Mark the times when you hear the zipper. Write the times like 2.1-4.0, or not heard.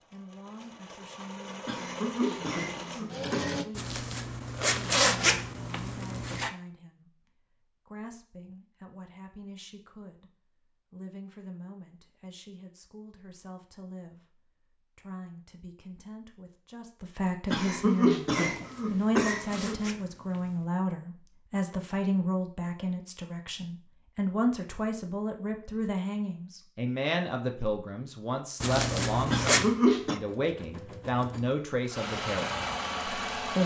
3.8-6.5, 18.5-20.6, 28.6-29.7.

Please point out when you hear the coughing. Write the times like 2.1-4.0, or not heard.
1.6-3.5, 17.5-19.8, 29.3-30.2.